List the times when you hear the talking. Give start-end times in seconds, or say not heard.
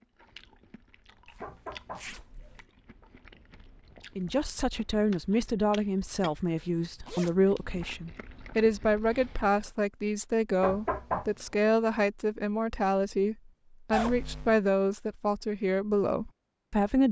4.2-17.0.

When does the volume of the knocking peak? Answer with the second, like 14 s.
11 s.